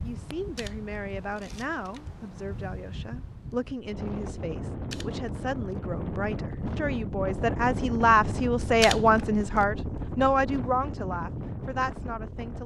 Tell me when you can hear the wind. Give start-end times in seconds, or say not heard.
0.0-12.6.